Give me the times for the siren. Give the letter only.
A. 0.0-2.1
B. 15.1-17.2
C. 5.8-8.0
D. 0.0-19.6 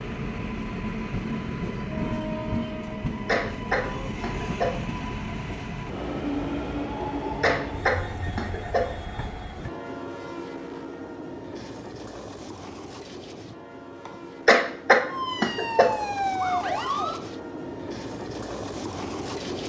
B.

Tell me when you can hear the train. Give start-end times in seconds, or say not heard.
0.0-19.6.